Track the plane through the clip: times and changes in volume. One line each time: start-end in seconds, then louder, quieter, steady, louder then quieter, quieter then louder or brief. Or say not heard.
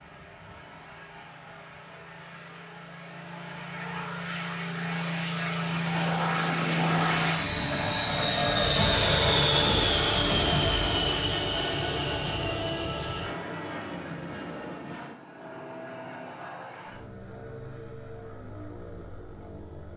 0.0-19.9 louder then quieter.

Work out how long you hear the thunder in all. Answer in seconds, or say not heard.
2 s.